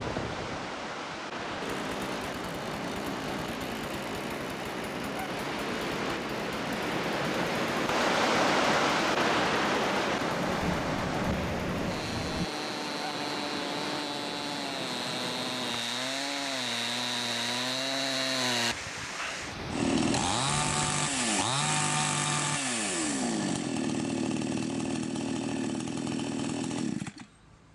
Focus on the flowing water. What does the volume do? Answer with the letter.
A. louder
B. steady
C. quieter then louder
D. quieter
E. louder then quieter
E.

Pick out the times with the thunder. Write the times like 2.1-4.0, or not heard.
10.5-12.4.